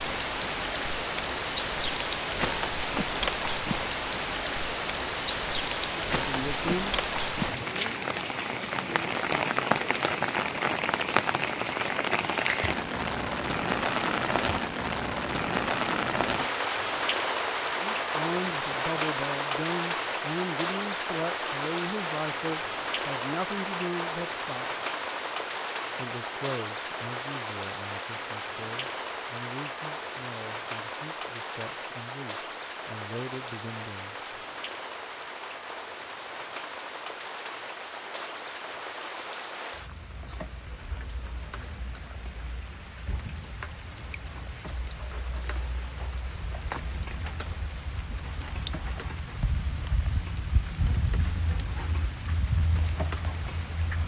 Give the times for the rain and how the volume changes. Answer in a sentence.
The rain can be heard from 0.0 to 54.0 s, getting quieter.